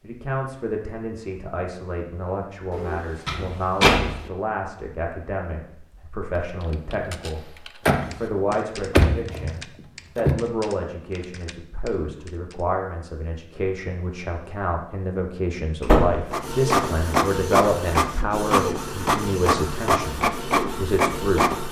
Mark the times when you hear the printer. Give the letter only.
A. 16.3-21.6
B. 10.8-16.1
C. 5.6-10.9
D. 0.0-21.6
A.